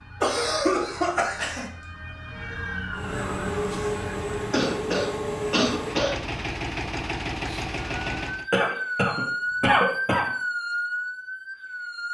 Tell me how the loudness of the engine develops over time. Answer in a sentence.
The loudness of the engine stays about the same.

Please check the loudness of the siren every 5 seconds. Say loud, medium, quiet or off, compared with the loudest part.
medium, loud, loud.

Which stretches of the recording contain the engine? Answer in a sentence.
The engine can be heard from 2.9 to 8.5 s.